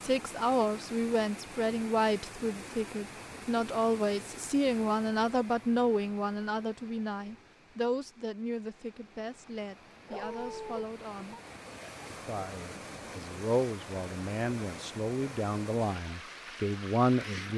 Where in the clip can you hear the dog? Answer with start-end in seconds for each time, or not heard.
10.1-10.8.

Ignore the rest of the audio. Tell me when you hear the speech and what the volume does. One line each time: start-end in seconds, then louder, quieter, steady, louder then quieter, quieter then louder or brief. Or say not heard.
0.0-11.3 quieter
12.1-17.5 louder.